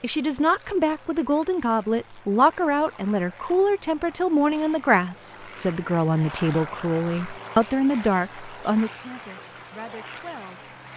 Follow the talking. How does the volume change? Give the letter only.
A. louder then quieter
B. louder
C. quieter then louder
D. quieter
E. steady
D.